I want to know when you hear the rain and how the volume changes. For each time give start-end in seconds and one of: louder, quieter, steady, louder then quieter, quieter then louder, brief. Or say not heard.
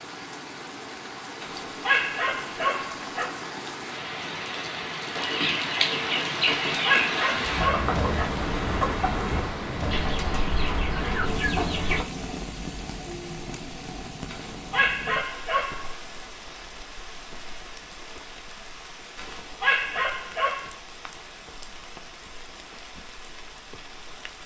0.0-24.4 louder then quieter.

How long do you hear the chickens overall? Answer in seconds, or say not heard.
7 s.